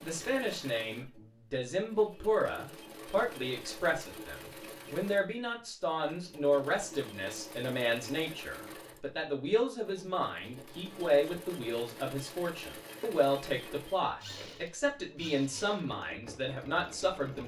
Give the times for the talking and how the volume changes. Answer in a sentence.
You can hear the talking from 0.0 to 17.4 s, at a steady volume.